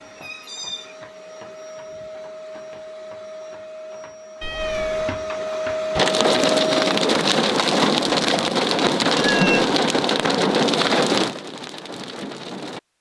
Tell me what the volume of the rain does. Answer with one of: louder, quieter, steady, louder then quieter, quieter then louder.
quieter.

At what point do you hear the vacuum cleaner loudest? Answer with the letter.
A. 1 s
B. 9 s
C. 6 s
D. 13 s
C.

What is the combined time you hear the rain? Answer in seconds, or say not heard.
7 s.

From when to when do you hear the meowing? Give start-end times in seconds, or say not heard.
0.1-0.9, 4.4-5.2, 9.2-9.8.